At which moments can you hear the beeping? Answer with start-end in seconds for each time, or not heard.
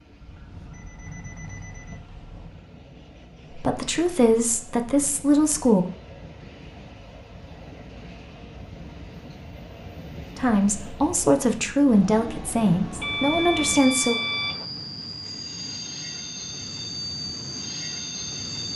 0.1-2.6, 13.0-14.7.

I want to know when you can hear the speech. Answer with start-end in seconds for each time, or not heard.
3.5-5.8, 10.3-14.2.